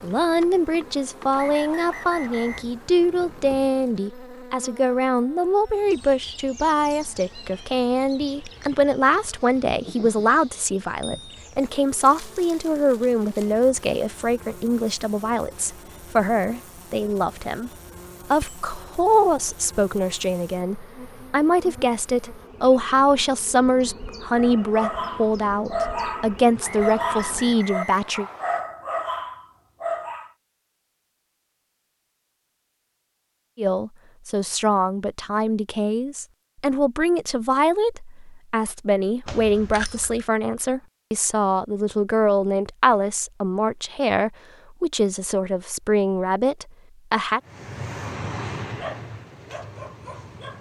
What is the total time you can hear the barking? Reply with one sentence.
The barking can be heard for 9 seconds in total.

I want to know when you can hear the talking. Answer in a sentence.
The talking can be heard from 0.0 to 17.7 s, from 18.3 to 28.2 s and from 33.5 to 47.4 s.